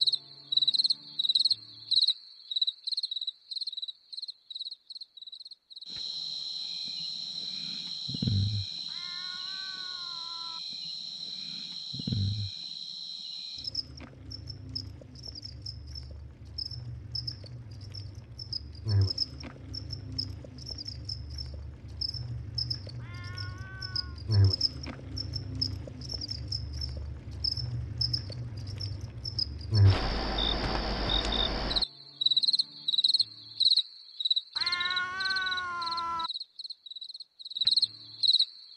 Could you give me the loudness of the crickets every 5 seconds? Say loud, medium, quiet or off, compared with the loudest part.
loud, medium, medium, medium, medium, medium, loud, loud.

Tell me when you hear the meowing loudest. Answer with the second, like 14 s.
35 s.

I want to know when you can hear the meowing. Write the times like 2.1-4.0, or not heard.
8.8-10.6, 22.9-24.2, 34.5-36.3.